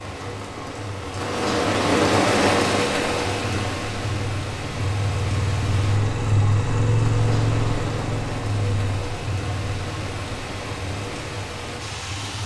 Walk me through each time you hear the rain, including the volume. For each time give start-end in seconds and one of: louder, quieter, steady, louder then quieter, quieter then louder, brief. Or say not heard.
0.0-12.4 quieter.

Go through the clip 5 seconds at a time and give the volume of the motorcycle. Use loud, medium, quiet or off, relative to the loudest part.
medium, loud, quiet.